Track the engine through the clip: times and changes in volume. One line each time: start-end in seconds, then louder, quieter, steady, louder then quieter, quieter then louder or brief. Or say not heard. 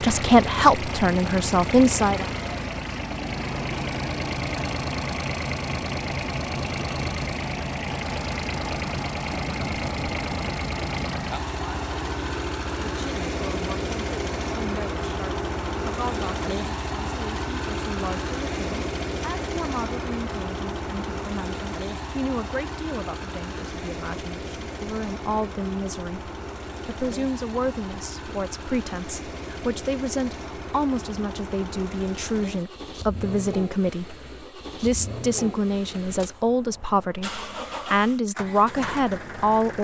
0.0-39.7 quieter.